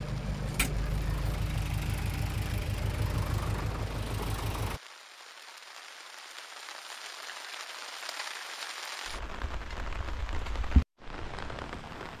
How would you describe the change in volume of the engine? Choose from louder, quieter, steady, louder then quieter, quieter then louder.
steady.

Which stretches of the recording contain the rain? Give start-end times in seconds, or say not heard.
0.0-12.1.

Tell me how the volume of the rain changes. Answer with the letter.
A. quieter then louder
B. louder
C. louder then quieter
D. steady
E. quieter
B.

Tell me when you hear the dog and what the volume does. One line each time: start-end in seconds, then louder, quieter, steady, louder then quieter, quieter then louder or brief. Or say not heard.
not heard.